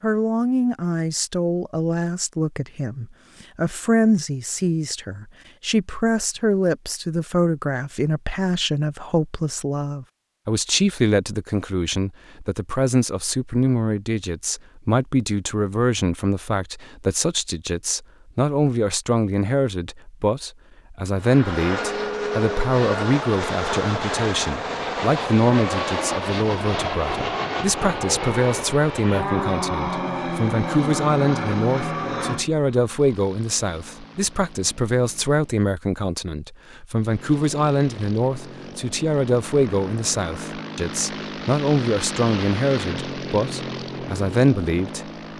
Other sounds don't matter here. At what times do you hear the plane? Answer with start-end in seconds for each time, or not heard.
21.1-35.7, 36.9-45.3.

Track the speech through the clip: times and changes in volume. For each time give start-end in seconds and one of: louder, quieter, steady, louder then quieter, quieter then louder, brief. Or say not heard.
0.0-45.0 steady.